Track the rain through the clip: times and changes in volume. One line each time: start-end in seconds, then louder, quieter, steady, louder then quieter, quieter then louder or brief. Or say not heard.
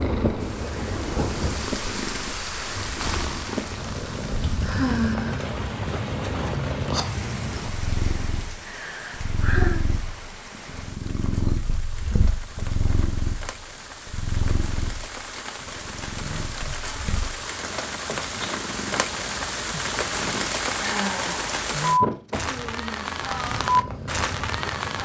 0.0-25.0 quieter then louder.